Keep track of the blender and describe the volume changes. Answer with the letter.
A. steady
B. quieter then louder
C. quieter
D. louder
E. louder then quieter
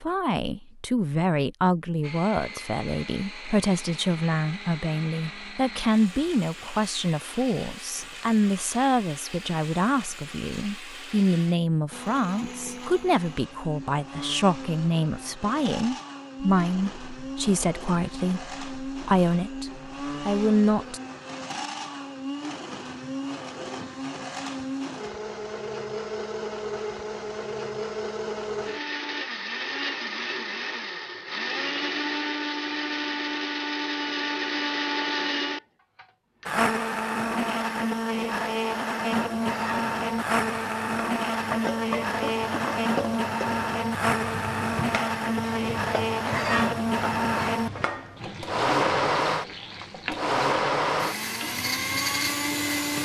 D.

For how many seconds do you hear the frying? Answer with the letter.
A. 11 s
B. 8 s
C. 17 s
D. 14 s
D.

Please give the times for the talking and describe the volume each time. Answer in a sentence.
The talking can be heard from 0.0 to 21.0 s, at a steady volume.